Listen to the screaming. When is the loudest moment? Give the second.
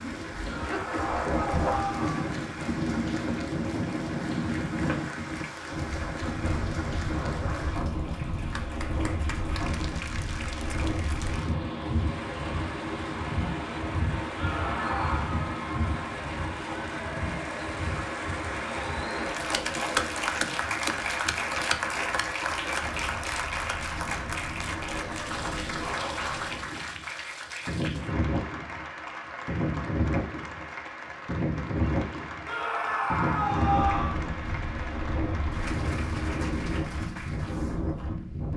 34 s.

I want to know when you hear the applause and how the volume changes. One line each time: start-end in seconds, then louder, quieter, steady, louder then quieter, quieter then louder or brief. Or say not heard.
0.0-38.5 louder then quieter.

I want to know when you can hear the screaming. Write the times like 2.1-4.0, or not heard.
0.5-2.3, 14.3-15.4, 32.5-34.2.